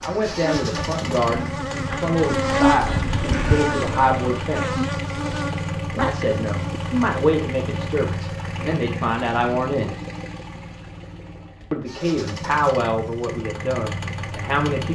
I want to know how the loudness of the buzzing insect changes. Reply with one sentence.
The loudness of the buzzing insect goes up, then down.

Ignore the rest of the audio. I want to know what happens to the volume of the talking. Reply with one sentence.
The volume of the talking stays about the same.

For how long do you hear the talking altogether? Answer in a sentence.
You can hear the talking for 12 seconds altogether.